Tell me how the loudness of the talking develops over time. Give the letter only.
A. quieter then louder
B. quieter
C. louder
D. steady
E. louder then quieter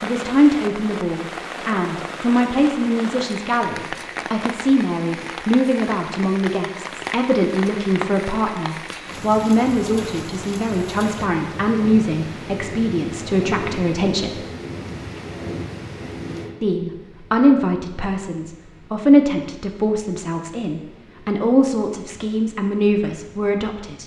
D.